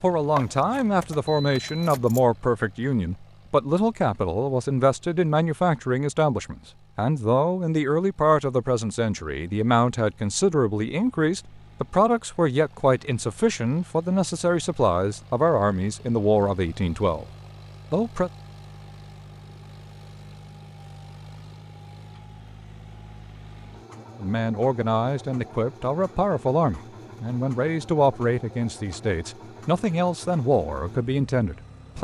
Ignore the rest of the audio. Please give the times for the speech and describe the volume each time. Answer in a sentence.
You can hear the speech from 0.0 to 17.2 s, at a steady volume; briefly from 17.9 to 18.3 s; and from 24.2 to 32.0 s, at a steady volume.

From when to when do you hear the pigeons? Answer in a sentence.
You can't hear the pigeons here.